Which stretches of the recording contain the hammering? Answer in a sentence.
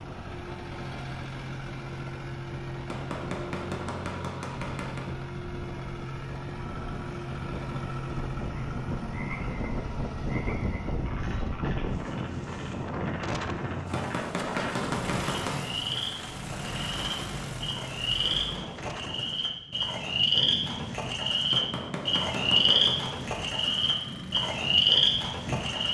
You can hear the hammering from 2.9 to 5.1 s, from 13.9 to 15.6 s and from 21.5 to 23.1 s.